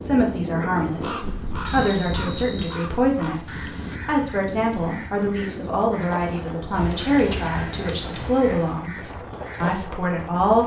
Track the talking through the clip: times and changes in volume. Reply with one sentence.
You can hear the talking from 0.0 to 10.6 s, at a steady volume.